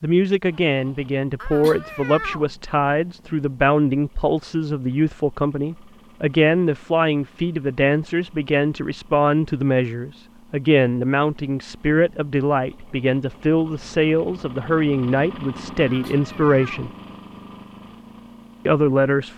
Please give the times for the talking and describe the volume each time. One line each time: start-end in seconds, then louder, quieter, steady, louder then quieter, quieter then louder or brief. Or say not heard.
0.0-16.9 steady
18.6-19.3 brief.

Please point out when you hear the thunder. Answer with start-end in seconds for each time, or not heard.
not heard.